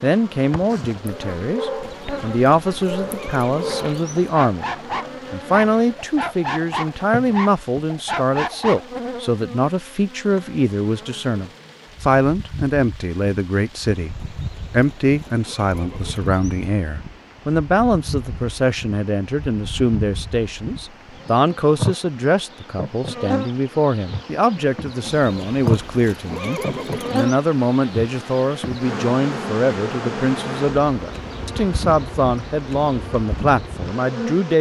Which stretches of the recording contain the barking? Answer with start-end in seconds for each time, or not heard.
1.0-9.0.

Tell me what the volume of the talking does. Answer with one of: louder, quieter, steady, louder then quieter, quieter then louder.
steady.